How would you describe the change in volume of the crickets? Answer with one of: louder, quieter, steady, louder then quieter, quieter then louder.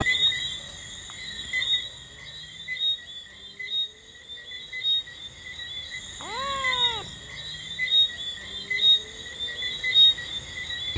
louder.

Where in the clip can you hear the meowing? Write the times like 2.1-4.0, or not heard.
6.2-7.2.